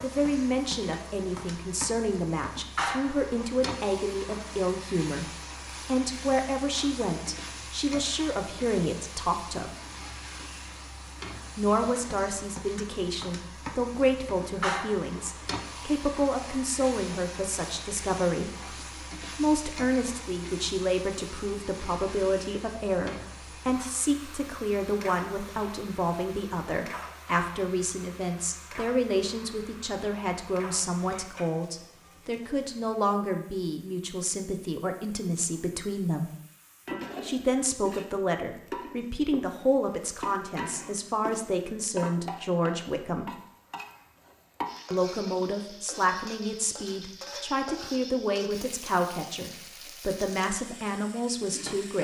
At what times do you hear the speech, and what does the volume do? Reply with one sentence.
The speech can be heard from 0.0 to 9.7 s, at a steady volume; from 11.6 to 36.2 s, at a steady volume; from 37.2 to 43.3 s, at a steady volume; and from 44.9 to 51.9 s, at a steady volume.